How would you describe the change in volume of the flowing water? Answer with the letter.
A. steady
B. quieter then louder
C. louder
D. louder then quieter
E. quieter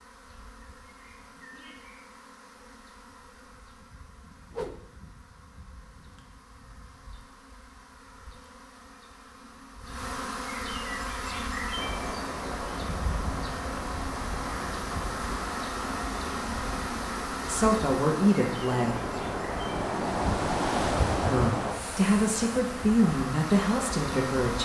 D.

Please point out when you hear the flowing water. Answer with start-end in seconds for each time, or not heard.
11.1-24.6.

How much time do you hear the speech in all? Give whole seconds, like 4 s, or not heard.
5 s.